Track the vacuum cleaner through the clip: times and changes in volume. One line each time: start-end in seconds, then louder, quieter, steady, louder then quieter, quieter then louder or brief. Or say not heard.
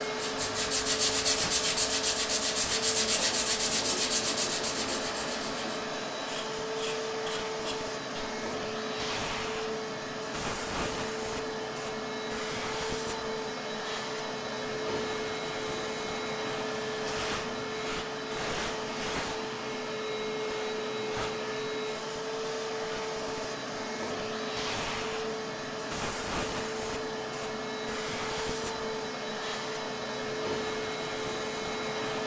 0.0-32.2 steady.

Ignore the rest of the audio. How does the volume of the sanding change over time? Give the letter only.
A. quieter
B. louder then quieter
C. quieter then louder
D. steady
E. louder
A.